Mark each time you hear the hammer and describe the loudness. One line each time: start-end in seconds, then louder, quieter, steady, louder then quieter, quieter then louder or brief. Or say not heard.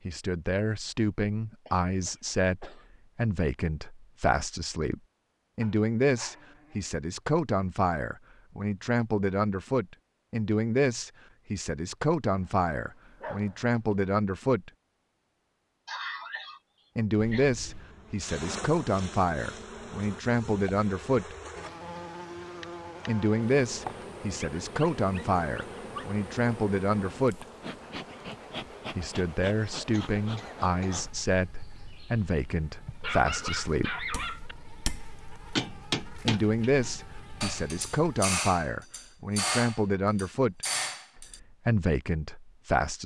34.1-41.4 steady.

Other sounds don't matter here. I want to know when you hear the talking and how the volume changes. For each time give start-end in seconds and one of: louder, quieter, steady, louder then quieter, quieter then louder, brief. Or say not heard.
0.1-14.7 steady
16.9-21.4 quieter then louder
23.1-27.4 quieter then louder
28.9-33.9 steady
36.2-43.0 steady.